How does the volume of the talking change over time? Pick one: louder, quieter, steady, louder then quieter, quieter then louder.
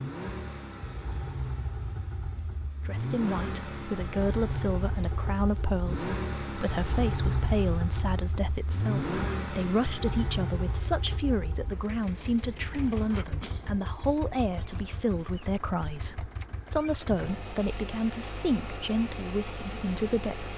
steady.